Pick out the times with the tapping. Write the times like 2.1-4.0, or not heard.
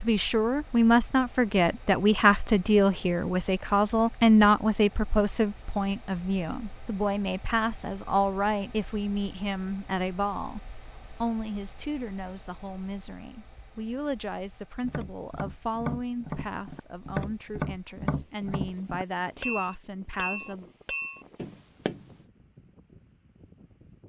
14.8-22.1.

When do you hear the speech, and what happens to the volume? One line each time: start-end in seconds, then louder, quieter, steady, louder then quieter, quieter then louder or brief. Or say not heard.
0.0-20.7 quieter.